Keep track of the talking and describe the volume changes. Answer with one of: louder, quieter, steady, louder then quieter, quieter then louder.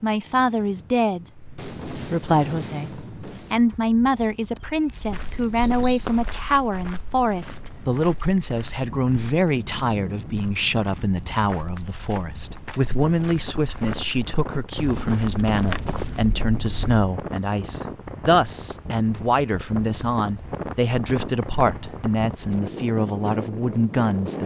steady.